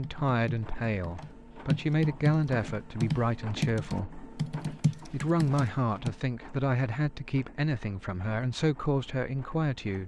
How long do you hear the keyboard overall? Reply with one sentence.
The keyboard can be heard for 6 seconds in total.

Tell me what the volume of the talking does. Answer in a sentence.
The volume of the talking stays about the same.